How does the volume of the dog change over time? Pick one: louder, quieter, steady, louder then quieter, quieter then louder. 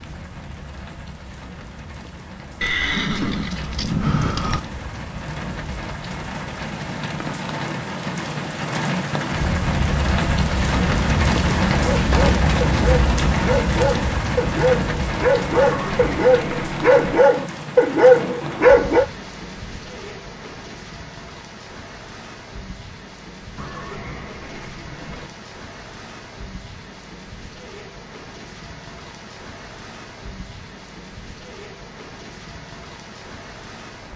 louder.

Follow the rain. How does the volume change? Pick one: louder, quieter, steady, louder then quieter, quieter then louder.
louder then quieter.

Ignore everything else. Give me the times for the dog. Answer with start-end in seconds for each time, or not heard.
11.8-19.1.